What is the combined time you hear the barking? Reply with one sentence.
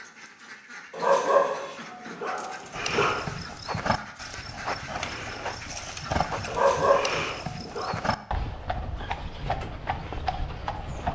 The barking can be heard for 4 seconds in total.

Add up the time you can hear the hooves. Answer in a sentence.
You can hear the hooves for 8 seconds altogether.